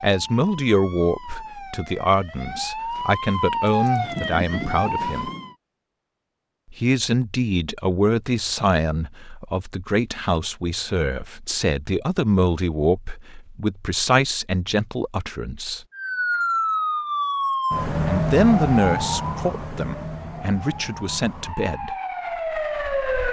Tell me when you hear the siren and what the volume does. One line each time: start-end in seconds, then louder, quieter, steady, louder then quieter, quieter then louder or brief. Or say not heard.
0.0-5.5 louder
15.9-23.2 quieter then louder.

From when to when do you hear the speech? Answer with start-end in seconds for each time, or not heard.
0.0-5.3, 6.7-15.8, 18.1-21.9.